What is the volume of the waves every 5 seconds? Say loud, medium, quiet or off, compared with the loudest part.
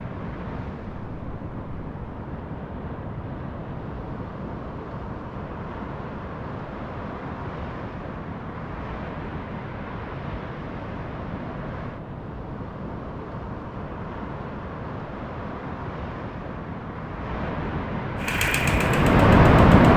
quiet, quiet, quiet, loud.